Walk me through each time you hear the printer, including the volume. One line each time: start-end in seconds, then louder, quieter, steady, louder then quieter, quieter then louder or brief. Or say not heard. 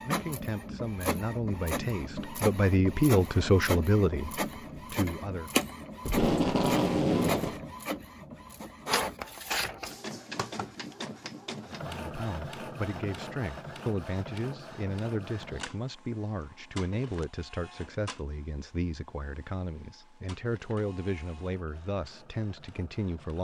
0.0-23.3 quieter.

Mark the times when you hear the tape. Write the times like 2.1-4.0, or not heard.
6.0-7.6.